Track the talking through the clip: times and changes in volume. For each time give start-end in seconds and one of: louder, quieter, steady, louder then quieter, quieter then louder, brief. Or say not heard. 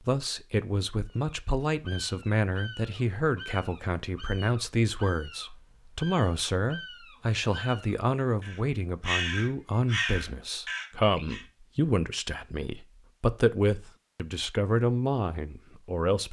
0.1-16.2 steady.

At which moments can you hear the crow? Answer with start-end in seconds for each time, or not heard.
1.1-11.4.